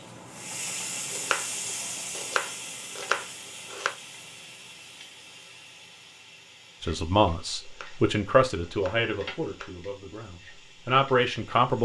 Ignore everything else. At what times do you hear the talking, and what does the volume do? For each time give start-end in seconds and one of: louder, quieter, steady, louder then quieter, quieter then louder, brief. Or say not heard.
6.8-11.8 quieter then louder.